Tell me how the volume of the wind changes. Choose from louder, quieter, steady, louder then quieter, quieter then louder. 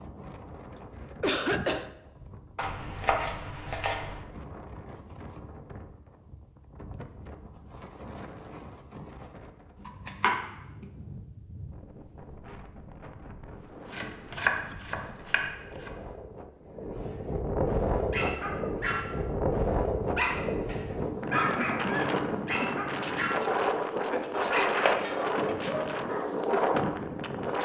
louder.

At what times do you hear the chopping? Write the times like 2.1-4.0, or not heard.
2.5-4.2, 9.8-10.8, 13.8-15.9, 24.1-25.8.